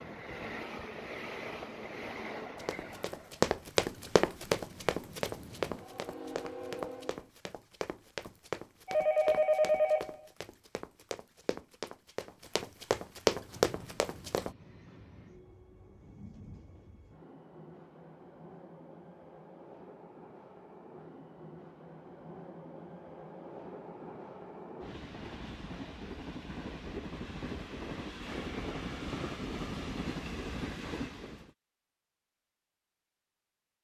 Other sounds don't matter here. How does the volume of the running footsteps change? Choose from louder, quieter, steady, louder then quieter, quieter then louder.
quieter then louder.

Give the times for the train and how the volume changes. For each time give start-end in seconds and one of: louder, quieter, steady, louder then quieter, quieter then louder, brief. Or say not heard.
0.0-7.3 quieter then louder
13.3-31.5 louder.